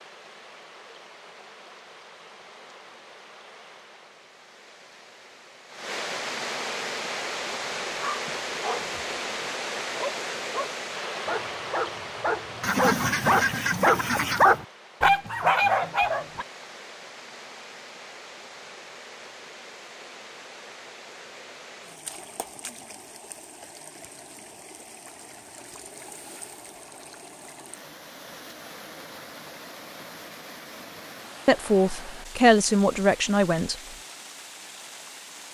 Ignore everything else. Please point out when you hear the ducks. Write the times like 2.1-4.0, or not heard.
12.6-14.6.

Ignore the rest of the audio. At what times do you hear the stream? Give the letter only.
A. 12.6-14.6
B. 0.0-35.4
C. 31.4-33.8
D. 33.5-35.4
B.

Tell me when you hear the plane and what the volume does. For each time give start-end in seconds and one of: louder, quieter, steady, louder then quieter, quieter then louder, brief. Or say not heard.
not heard.